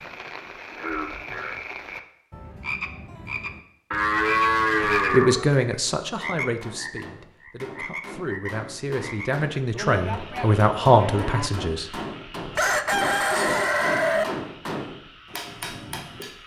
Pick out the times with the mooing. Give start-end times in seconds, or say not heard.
3.9-5.5, 9.7-11.5.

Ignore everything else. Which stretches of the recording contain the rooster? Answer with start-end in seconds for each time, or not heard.
12.6-14.2.